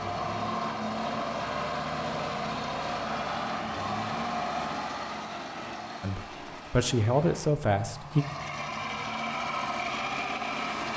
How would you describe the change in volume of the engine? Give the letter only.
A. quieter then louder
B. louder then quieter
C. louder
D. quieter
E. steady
A.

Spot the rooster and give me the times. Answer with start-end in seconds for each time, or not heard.
not heard.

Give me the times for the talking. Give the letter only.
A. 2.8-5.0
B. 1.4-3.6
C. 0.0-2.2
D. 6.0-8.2
D.